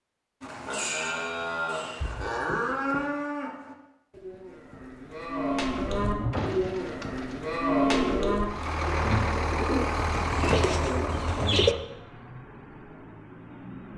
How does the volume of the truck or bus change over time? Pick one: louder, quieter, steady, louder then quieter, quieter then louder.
quieter.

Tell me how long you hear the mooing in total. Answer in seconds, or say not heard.
9 s.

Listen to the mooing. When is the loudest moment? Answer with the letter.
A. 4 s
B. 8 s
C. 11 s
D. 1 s
B.